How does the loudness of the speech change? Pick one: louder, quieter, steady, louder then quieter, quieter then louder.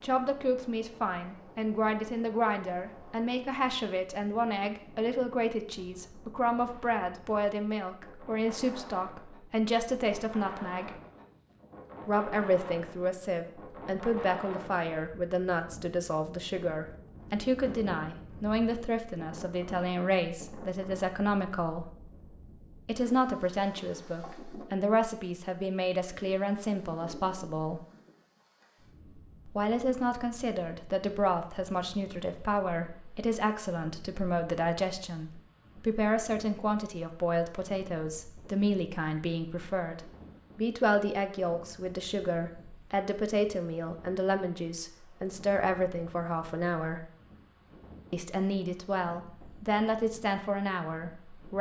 steady.